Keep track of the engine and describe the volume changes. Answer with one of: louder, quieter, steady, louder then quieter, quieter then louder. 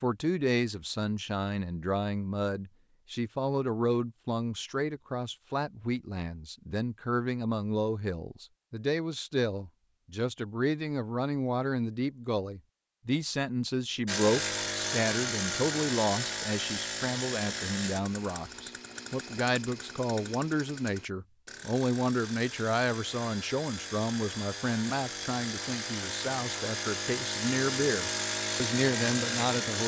quieter then louder.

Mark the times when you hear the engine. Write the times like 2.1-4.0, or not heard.
14.1-29.8.